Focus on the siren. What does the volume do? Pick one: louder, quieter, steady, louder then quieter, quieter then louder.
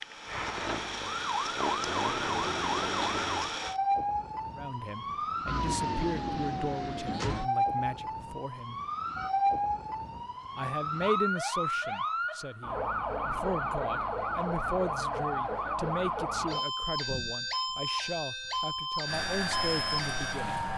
steady.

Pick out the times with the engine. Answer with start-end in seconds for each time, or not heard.
0.0-3.8, 19.1-20.7.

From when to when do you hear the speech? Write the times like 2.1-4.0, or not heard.
4.5-8.8, 10.6-20.6.